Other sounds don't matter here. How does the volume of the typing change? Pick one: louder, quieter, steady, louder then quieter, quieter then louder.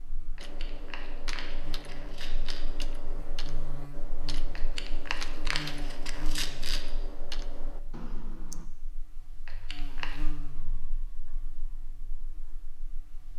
steady.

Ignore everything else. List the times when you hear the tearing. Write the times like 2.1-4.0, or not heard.
0.3-2.6, 4.5-6.8, 9.4-10.2.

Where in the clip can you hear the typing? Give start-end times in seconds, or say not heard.
0.4-8.7.